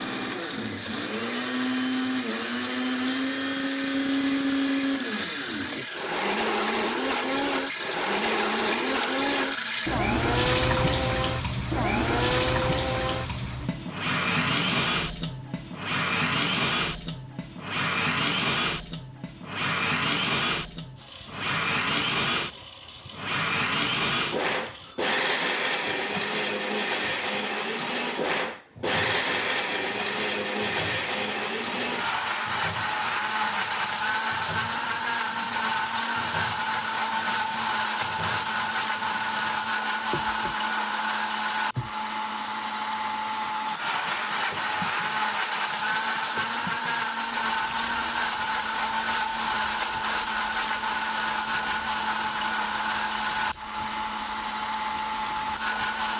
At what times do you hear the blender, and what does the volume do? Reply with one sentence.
You can hear the blender from 0.0 to 56.1 s, at a steady volume.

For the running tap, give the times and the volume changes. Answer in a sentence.
You can hear the running tap from 0.1 to 56.1 s, getting quieter.